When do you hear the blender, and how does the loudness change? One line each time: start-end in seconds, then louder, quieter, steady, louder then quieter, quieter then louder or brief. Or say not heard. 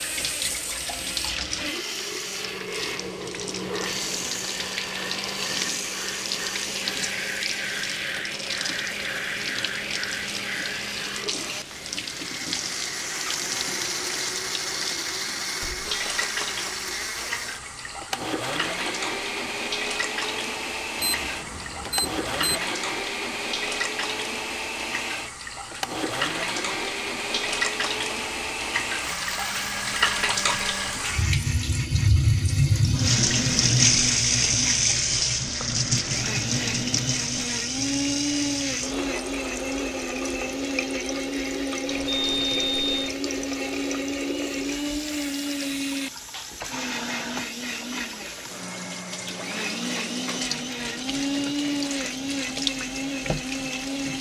0.0-54.1 steady.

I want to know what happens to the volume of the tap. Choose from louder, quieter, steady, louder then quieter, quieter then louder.
louder then quieter.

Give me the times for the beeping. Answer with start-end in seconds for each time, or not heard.
20.9-22.6, 41.9-43.1.